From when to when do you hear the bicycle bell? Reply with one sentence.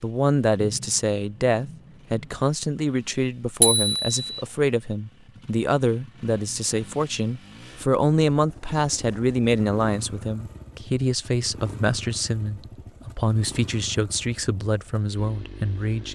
You can hear the bicycle bell from 3.6 to 4.4 s.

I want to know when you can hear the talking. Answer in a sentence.
The talking can be heard from 0.0 to 16.1 s.